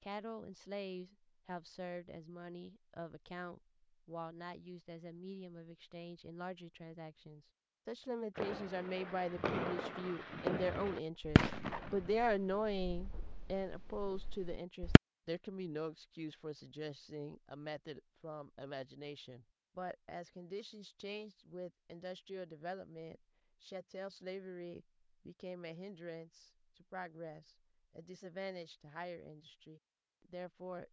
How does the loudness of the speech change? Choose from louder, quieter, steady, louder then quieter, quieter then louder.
louder then quieter.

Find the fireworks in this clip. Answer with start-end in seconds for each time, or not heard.
8.3-15.0.